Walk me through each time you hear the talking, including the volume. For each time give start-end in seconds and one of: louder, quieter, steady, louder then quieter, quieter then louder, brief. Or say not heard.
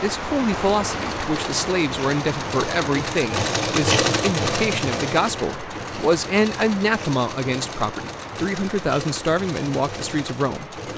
0.0-10.8 steady.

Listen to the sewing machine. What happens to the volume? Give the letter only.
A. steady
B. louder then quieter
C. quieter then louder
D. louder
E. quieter
B.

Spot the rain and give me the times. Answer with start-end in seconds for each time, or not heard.
0.0-10.9.